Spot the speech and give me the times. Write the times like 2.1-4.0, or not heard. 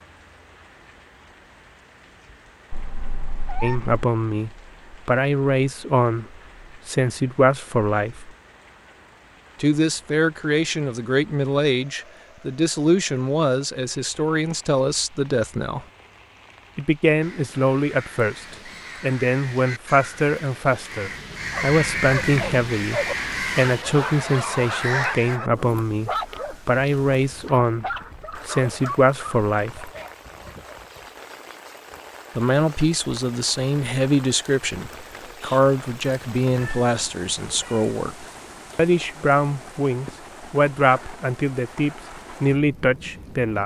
3.6-8.3, 9.6-15.8, 16.8-29.9, 32.4-43.6.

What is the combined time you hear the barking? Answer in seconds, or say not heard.
9 s.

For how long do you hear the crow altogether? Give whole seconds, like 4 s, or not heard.
8 s.